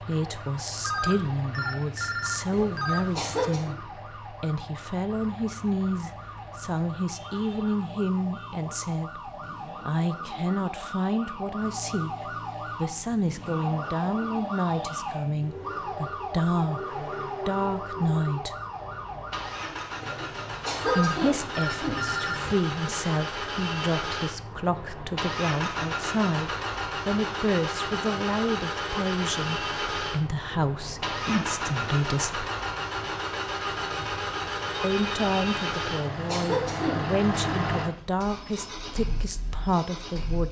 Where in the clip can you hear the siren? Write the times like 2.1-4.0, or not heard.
0.0-19.5.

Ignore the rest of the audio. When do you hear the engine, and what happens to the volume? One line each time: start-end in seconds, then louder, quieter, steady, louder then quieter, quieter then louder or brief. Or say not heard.
0.0-40.4 louder.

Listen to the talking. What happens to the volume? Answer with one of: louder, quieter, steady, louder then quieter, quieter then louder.
steady.